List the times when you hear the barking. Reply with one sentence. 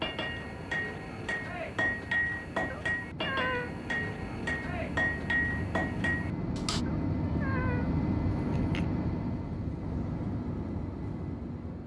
The barking can't be heard in this clip.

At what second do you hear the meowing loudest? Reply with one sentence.
The loudest moment of the meowing is at 3 seconds.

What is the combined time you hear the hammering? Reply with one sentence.
You can hear the hammering for 7 seconds altogether.